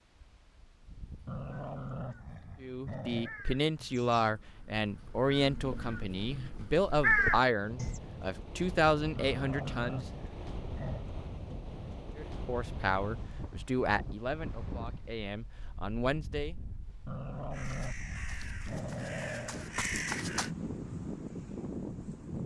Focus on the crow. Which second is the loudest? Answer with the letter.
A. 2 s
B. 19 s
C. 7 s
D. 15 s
C.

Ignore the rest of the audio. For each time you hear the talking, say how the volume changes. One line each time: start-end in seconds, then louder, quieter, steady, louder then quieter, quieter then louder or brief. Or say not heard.
2.6-10.1 steady
12.2-16.6 quieter then louder.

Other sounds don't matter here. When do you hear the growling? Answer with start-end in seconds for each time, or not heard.
1.2-3.3, 9.2-11.1, 17.1-19.7.